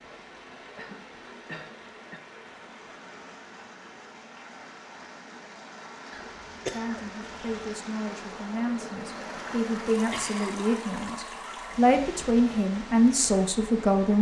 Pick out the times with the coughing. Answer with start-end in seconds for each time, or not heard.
0.8-2.2, 6.1-7.6, 9.9-10.6.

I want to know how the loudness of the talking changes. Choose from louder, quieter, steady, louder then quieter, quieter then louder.
louder.